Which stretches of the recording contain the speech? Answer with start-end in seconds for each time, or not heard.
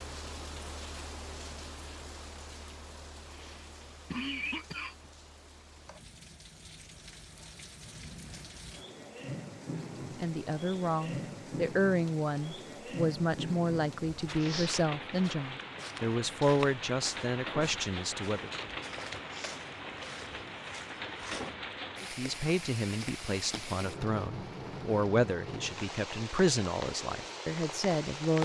10.2-18.5, 22.0-28.4.